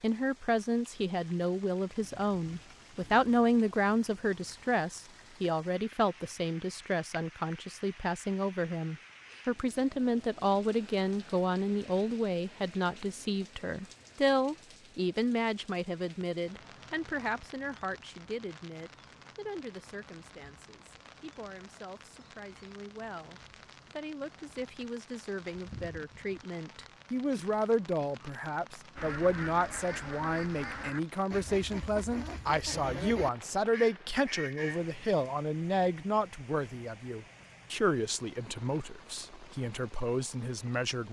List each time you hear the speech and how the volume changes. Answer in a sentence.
You can hear the speech from 0.0 to 41.0 s, getting quieter then louder.